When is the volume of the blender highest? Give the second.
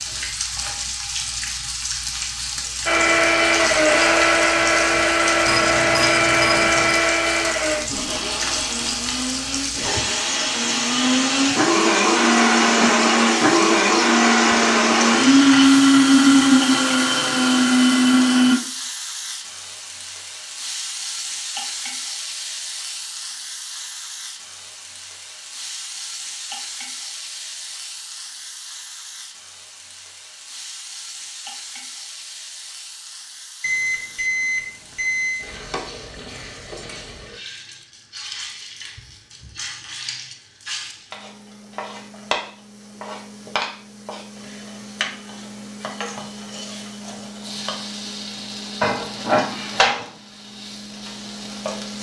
16 s.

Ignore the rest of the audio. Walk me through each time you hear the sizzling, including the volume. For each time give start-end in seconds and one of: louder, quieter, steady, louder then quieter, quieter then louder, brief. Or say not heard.
0.0-51.9 quieter then louder.